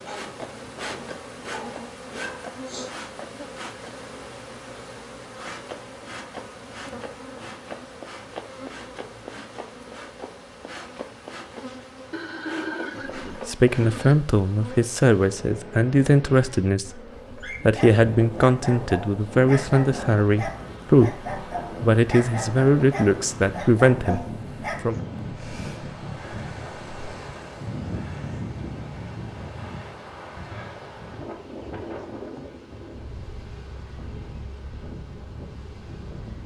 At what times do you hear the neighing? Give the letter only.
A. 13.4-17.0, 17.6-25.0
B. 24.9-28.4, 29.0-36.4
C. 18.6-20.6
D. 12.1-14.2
D.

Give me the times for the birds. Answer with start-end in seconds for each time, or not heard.
not heard.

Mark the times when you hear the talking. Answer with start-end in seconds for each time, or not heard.
13.4-17.0, 17.6-25.0.